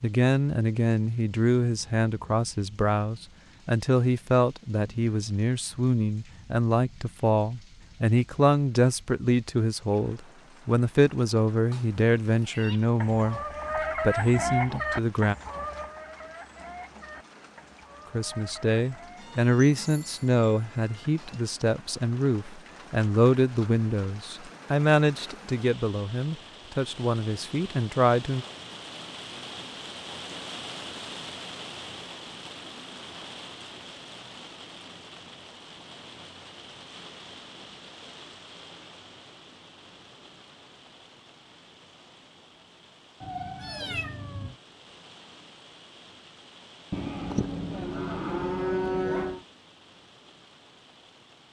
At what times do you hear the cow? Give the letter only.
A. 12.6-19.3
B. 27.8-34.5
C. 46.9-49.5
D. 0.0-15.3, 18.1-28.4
C.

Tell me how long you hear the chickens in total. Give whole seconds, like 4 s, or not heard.
7 s.